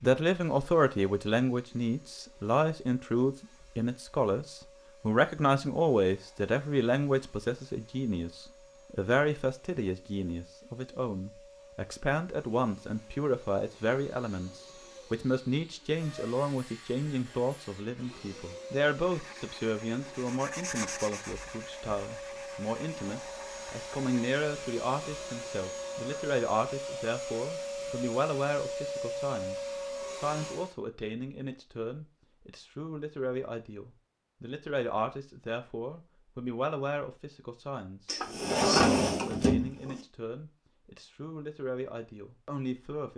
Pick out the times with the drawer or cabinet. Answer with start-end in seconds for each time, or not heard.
38.0-40.0.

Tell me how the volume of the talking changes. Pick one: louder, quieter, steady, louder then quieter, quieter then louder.
quieter.